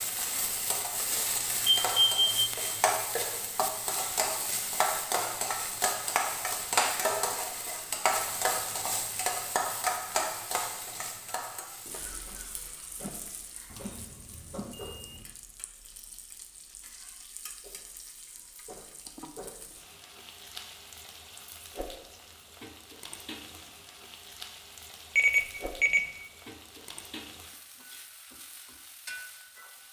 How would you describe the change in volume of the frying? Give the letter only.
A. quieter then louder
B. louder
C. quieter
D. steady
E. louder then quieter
C.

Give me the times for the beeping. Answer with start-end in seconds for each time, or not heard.
1.6-2.5, 13.7-15.2, 25.1-26.1.